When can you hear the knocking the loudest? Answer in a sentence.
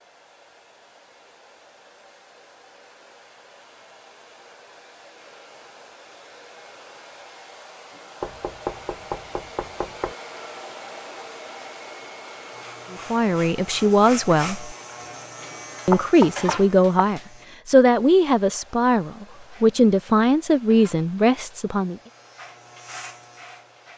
The loudest moment of the knocking is at 16 seconds.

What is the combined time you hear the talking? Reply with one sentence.
You can hear the talking for 8 seconds altogether.